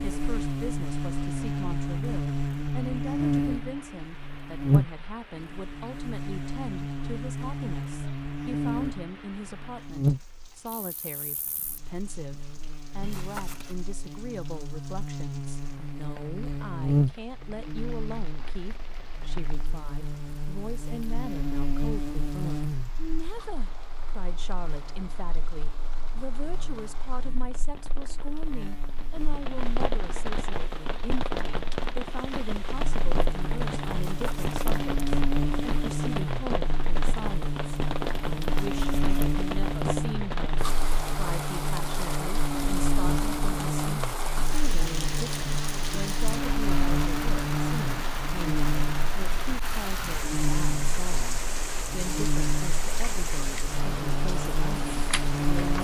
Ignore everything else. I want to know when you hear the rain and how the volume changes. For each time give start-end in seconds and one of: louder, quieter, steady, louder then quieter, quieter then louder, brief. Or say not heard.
0.0-55.7 louder.